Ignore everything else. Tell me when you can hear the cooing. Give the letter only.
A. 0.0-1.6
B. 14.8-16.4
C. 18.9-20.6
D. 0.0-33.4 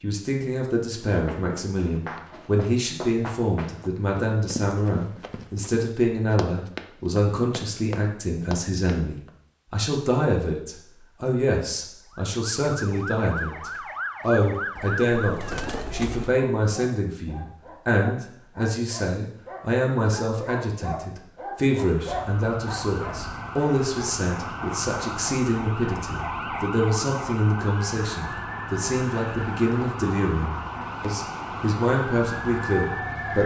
B.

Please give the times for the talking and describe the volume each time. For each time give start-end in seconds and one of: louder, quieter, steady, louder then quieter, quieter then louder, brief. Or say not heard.
0.0-33.4 steady.